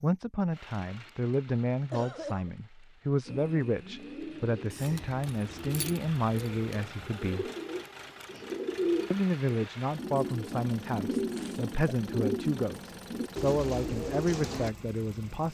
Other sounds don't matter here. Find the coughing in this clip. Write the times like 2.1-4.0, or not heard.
1.9-2.5.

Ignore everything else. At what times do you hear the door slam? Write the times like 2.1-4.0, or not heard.
not heard.